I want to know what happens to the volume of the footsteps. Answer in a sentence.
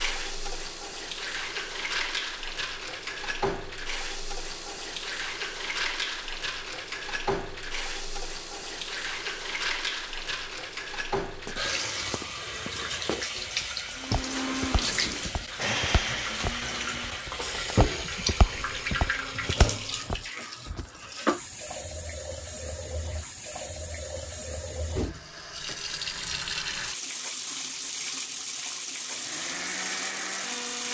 The loudness of the footsteps goes up.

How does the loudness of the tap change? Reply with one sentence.
The volume of the tap stays about the same.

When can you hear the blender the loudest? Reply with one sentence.
The loudest moment of the blender is at 16 seconds.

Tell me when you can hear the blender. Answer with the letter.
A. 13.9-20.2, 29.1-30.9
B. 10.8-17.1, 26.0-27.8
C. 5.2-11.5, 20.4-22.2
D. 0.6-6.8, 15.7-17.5
A.